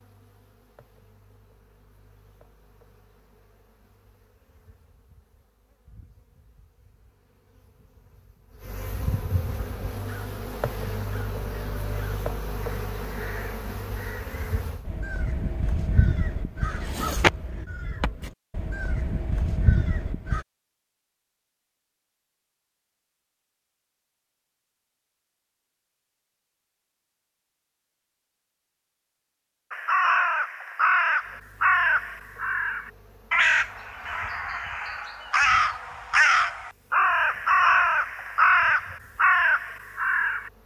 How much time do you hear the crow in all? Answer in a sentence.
You can hear the crow for 22 seconds altogether.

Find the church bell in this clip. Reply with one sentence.
You can't hear the church bell here.